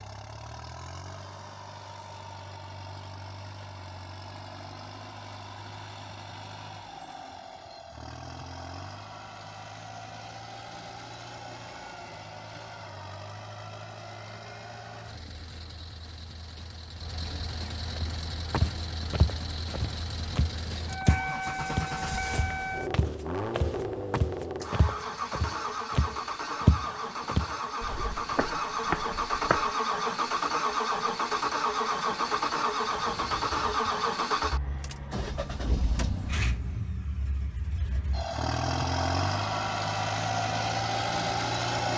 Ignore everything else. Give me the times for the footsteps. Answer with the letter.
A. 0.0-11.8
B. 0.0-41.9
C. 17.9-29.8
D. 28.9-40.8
C.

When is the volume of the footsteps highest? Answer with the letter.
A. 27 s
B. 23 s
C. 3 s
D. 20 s
A.